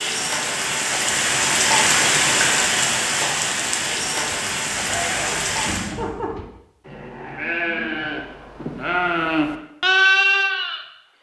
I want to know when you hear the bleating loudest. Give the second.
10 s.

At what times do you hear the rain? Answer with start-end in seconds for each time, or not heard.
0.0-6.0.